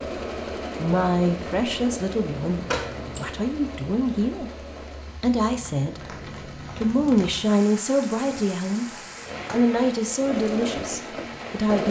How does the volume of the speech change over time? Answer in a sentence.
The loudness of the speech stays about the same.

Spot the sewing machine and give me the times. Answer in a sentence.
You can hear the sewing machine from 0.0 to 6.7 s and from 10.2 to 11.8 s.